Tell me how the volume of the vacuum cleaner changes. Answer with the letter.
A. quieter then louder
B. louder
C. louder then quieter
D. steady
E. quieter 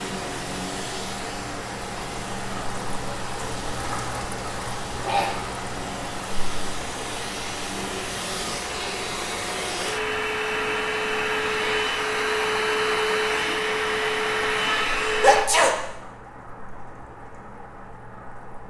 B.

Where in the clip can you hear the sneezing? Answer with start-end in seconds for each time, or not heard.
5.0-5.5, 15.1-15.7.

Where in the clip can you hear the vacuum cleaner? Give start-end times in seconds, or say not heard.
0.0-15.5.